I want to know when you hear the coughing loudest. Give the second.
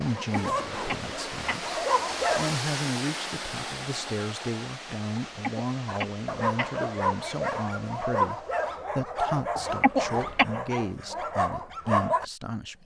10 s.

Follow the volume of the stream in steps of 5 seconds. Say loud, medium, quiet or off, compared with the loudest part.
loud, medium, off.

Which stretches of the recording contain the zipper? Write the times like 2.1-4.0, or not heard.
0.3-1.1.